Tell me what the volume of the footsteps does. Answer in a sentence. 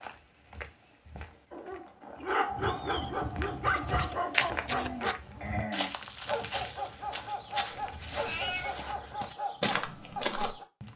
The loudness of the footsteps goes up.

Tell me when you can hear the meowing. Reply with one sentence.
You can hear the meowing from 2.6 to 3.7 s and from 7.7 to 8.8 s.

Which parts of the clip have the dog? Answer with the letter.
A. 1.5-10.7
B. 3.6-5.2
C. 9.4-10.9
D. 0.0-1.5
A.